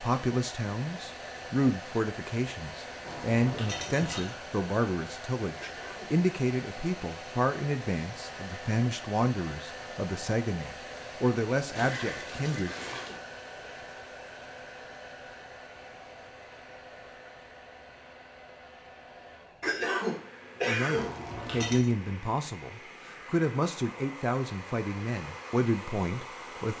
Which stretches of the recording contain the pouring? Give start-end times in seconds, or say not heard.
3.0-4.3, 11.8-13.2, 20.9-21.9.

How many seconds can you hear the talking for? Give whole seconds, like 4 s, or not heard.
19 s.